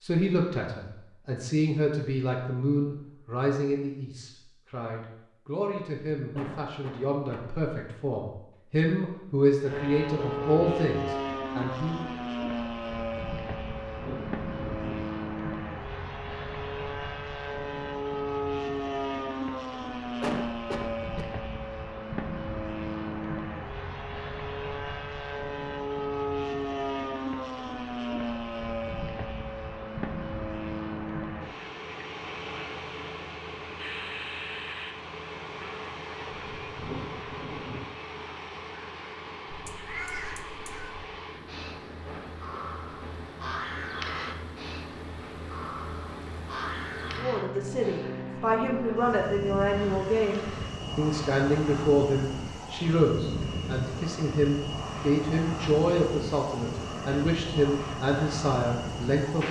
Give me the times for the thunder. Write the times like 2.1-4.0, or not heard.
13.7-15.1, 36.3-37.9.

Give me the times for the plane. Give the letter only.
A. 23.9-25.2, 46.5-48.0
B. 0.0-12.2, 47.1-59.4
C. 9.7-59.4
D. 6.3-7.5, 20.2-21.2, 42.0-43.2
C.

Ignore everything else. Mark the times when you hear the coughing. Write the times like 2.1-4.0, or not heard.
6.3-7.5, 20.2-21.2, 42.0-43.2.